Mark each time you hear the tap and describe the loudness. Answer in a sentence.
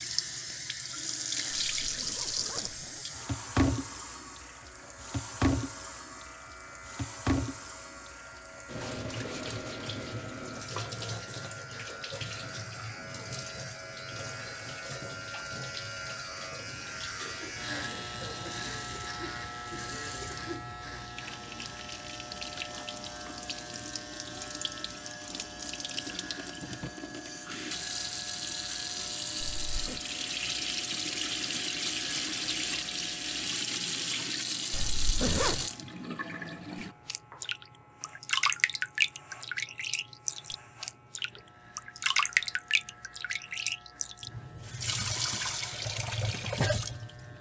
The tap can be heard from 0.0 to 47.3 s, getting quieter then louder.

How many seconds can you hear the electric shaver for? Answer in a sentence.
The electric shaver can be heard for 47 seconds in total.